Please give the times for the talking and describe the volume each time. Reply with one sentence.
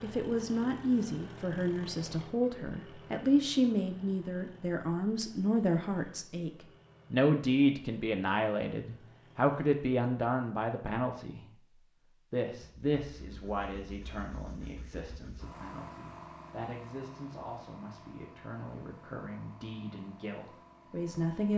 You can hear the talking from 0.0 to 21.5 s, getting quieter.